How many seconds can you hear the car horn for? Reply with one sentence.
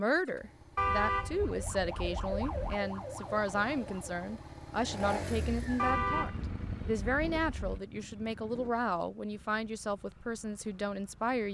The car horn can be heard for 4 seconds in total.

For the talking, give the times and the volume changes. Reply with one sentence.
You can hear the talking from 0.0 to 11.4 s, at a steady volume.